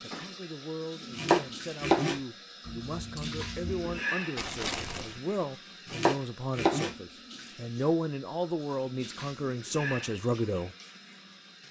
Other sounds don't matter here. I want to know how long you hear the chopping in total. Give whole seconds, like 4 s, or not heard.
2 s.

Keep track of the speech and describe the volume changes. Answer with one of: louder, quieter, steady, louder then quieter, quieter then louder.
louder.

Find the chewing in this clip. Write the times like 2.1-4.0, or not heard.
2.6-5.2.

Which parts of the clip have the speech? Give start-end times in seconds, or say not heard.
0.0-10.7.